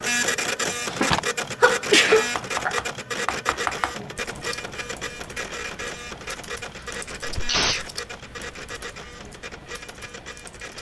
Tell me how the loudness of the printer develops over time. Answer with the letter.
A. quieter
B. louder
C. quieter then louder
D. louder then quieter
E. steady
A.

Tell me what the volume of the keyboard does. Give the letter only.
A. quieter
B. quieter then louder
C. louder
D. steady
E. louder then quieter
A.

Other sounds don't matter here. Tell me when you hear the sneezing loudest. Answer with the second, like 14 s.
2 s.